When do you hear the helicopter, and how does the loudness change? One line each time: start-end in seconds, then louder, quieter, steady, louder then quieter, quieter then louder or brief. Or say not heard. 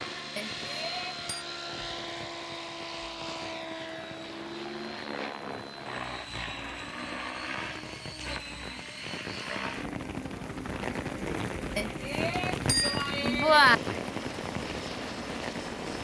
0.0-15.9 steady.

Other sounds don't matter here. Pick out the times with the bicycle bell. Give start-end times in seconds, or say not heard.
0.3-1.2, 11.8-13.8.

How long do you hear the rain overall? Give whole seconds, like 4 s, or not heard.
16 s.